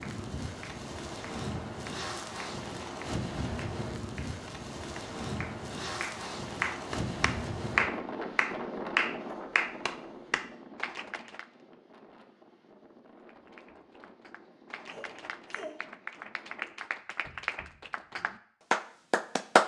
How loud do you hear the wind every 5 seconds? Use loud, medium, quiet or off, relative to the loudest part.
loud, loud, quiet, quiet.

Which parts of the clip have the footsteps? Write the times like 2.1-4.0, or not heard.
not heard.